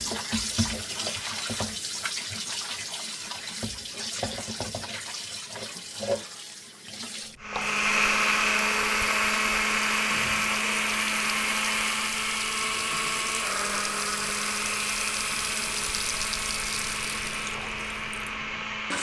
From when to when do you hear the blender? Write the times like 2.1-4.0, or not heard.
7.4-18.9.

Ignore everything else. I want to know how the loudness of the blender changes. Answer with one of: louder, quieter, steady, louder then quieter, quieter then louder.
quieter.